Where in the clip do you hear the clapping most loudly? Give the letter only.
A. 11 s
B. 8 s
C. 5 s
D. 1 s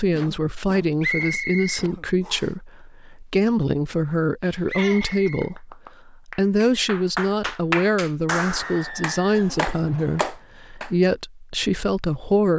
B.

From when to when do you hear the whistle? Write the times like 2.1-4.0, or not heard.
1.0-2.5, 4.7-5.5, 8.6-10.3.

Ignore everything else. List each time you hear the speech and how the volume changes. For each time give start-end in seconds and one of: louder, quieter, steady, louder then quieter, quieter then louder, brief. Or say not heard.
0.0-12.5 steady.